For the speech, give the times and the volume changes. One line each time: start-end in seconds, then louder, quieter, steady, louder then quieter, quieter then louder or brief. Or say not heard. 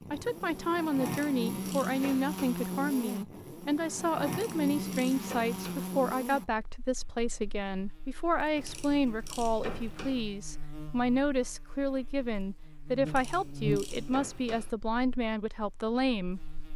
0.1-16.4 steady.